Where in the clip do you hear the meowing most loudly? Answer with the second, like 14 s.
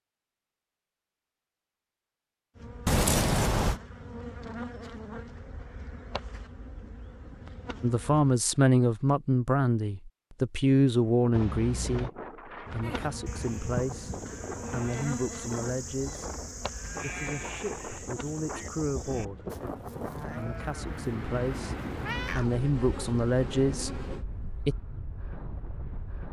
3 s.